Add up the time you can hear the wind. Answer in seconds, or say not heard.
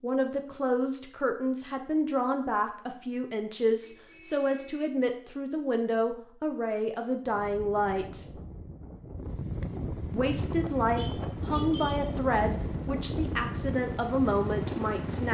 8 s.